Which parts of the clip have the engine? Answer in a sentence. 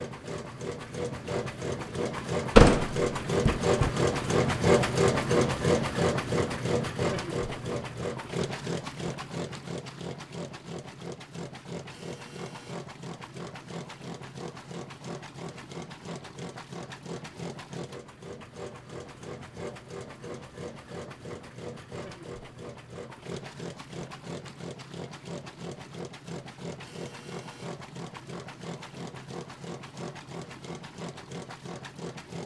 The engine can be heard from 0.0 to 32.4 s.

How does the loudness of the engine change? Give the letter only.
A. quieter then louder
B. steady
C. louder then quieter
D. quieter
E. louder
D.